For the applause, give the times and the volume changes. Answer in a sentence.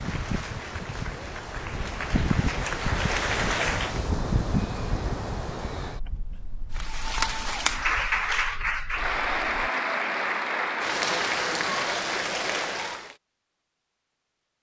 You can hear the applause from 0.0 to 4.1 s, getting louder; and from 6.7 to 13.2 s, at a steady volume.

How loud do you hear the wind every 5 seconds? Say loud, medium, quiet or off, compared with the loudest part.
loud, medium, off.